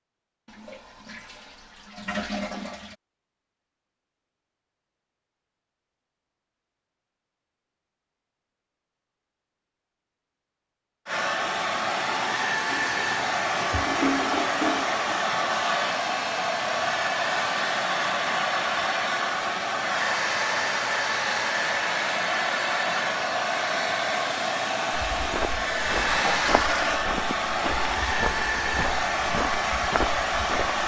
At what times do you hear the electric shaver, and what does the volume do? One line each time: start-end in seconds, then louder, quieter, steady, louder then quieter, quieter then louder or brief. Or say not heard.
not heard.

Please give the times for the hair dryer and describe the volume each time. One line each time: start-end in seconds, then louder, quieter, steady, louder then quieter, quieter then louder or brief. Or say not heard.
11.1-30.8 steady.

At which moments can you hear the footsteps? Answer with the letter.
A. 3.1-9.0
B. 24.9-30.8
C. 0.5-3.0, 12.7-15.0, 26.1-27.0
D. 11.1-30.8
B.